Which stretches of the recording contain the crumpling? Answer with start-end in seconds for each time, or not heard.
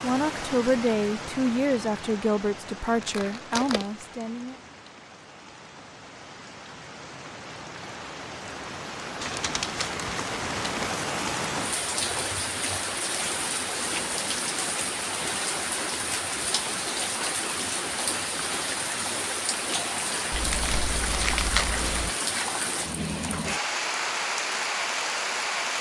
3.0-3.9, 9.2-11.1, 20.3-22.1.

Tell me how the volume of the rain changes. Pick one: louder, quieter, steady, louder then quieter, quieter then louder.
louder.